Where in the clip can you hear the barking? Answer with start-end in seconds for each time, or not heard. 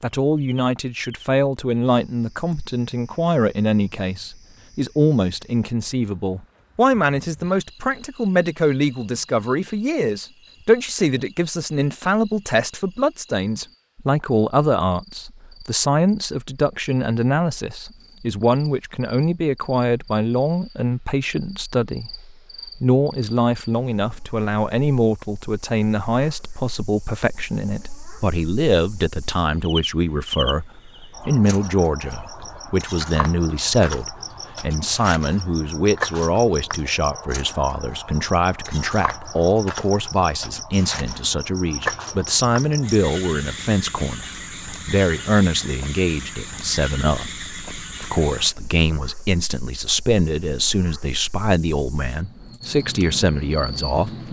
not heard.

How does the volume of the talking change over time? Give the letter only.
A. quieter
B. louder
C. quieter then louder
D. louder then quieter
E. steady
E.